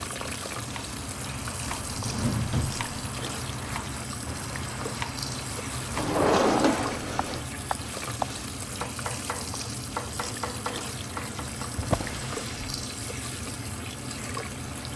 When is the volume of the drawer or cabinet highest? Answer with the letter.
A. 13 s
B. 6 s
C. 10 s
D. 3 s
B.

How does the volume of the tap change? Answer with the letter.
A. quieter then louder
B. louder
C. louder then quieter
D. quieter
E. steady
E.